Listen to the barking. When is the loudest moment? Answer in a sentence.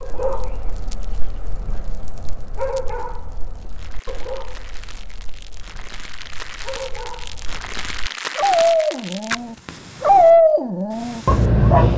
The volume of the barking peaks at 10 seconds.